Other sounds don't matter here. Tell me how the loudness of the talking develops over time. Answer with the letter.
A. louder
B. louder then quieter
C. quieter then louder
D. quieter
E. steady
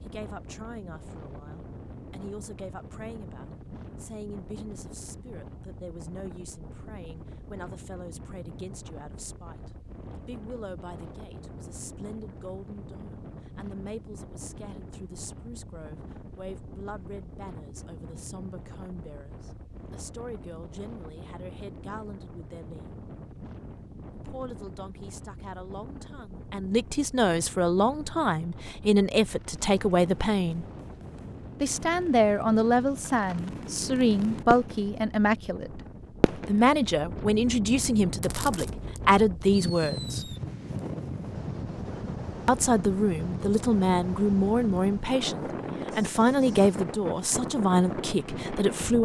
A.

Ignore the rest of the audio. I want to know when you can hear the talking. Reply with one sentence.
You can hear the talking from 0.0 to 22.9 s, from 24.1 to 30.6 s, from 31.6 to 35.8 s, from 36.5 to 40.4 s and from 42.5 to 49.0 s.